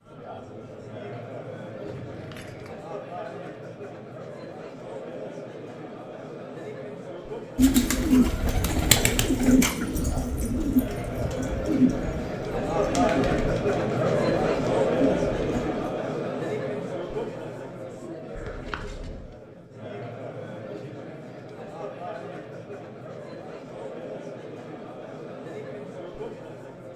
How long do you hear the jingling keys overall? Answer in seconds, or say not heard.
2 s.